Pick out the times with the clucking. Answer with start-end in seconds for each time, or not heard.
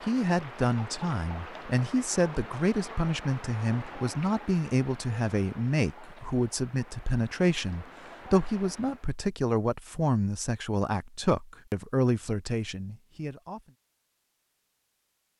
not heard.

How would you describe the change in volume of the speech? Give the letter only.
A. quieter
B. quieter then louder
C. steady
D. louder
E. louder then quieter
C.